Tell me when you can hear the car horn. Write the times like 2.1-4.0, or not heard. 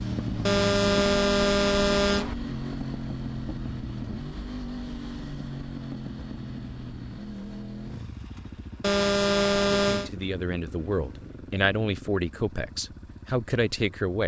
0.5-2.4, 8.8-10.1.